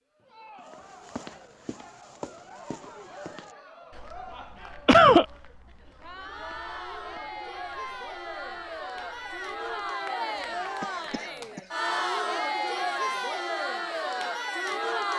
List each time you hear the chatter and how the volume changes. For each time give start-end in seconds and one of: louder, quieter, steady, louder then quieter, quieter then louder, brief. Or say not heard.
0.1-15.1 louder.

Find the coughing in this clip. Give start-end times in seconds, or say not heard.
4.8-5.2, 10.8-11.7.